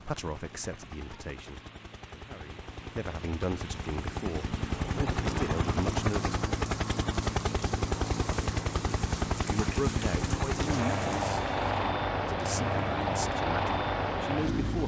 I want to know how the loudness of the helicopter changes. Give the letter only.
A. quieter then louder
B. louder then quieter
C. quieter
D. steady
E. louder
E.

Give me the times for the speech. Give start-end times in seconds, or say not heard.
0.0-6.3, 9.4-11.4, 12.2-14.8.